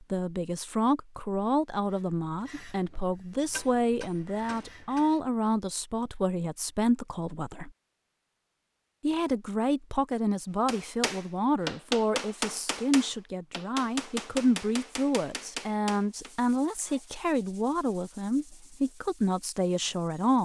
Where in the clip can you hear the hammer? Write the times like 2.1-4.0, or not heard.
2.5-5.1, 10.7-16.3.